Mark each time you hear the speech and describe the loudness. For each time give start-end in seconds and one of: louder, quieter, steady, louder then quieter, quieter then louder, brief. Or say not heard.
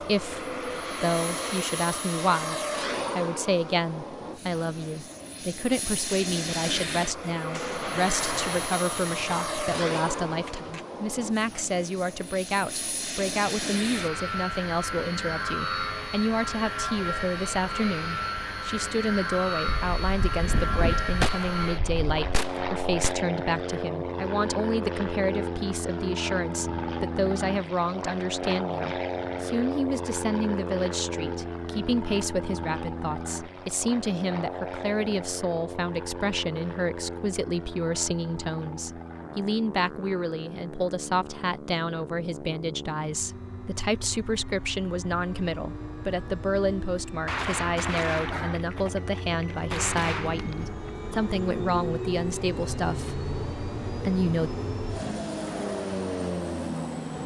0.0-54.5 steady.